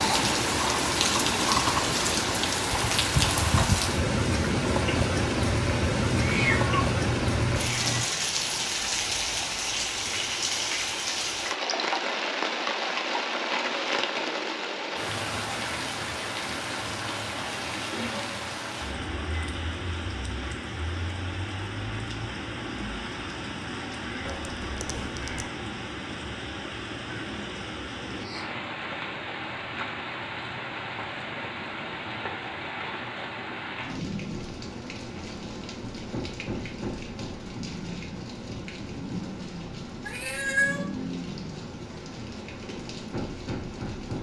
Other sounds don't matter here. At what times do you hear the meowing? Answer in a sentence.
The meowing can be heard from 6.1 to 8.1 s, from 24.2 to 25.5 s and from 40.0 to 40.9 s.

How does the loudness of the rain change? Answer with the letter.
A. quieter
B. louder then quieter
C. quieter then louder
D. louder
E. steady
A.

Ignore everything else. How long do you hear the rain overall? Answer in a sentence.
You can hear the rain for 44 seconds altogether.